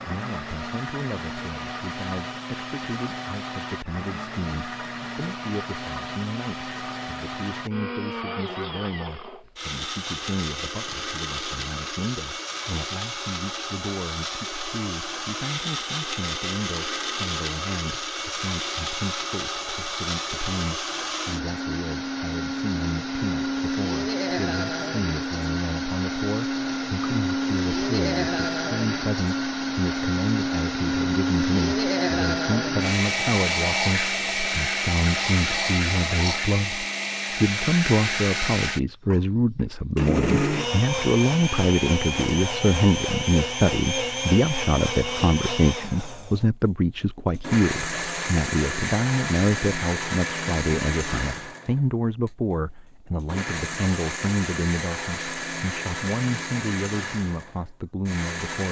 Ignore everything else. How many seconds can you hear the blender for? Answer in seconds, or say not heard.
57 s.